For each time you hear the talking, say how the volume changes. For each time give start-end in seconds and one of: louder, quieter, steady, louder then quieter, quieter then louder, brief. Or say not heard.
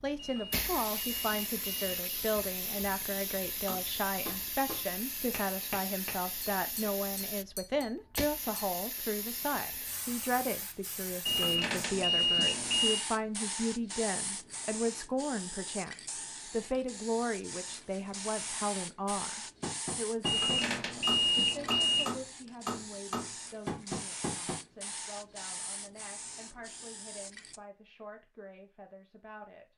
0.0-29.7 quieter.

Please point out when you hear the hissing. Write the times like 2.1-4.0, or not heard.
0.0-27.6.